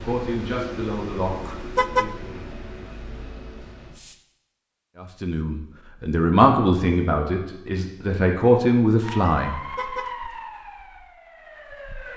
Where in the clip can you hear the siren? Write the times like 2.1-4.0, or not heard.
9.0-12.1.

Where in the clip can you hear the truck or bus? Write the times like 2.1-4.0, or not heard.
0.0-4.2.